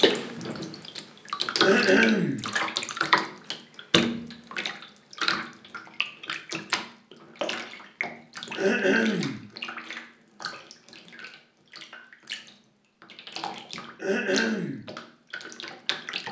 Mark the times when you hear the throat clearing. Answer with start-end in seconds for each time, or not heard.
1.6-2.5, 8.6-9.4, 13.9-14.8.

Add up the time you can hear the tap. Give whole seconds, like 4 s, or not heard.
16 s.